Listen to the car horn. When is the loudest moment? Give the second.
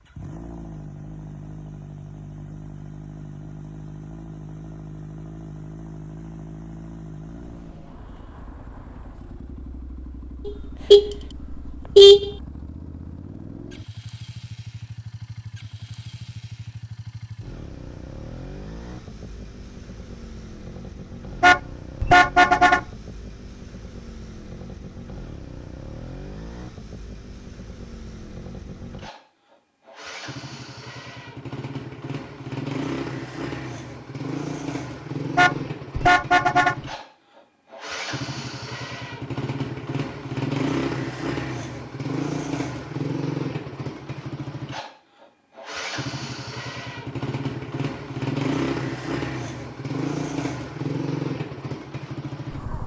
12 s.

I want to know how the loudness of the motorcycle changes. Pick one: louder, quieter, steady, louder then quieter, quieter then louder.
louder.